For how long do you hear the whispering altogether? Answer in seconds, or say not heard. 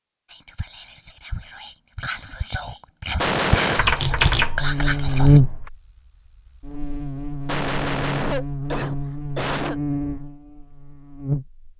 5 s.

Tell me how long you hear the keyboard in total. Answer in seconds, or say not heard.
2 s.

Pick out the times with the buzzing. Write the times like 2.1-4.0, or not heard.
4.6-11.6.